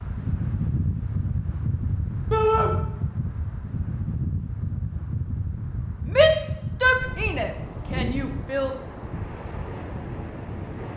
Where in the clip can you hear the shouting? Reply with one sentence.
The shouting can be heard from 2.3 to 2.7 s and from 6.0 to 8.8 s.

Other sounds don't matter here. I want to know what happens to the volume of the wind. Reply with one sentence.
The loudness of the wind goes down.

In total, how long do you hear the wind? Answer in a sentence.
The wind can be heard for 11 seconds in total.